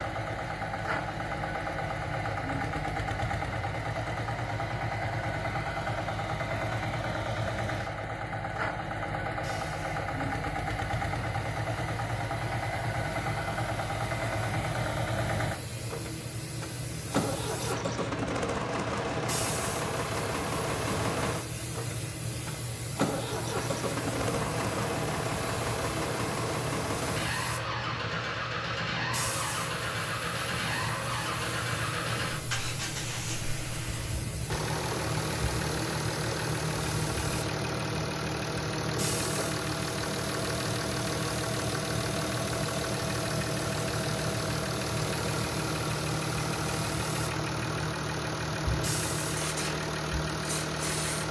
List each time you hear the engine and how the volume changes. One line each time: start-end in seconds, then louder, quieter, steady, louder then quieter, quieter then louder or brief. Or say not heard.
0.0-51.2 steady.